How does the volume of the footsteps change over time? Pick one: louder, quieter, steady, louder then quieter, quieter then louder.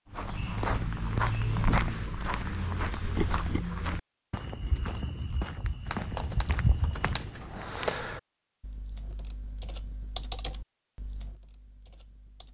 quieter then louder.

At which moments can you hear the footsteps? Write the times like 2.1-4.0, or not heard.
0.1-7.7.